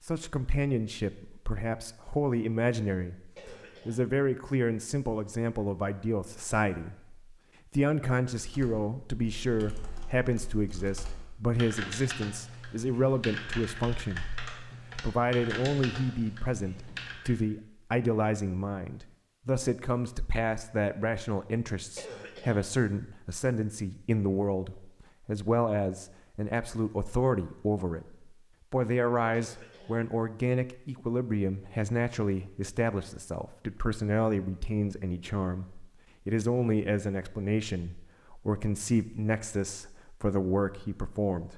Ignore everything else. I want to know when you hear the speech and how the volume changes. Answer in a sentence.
You can hear the speech from 0.0 to 41.5 s, at a steady volume.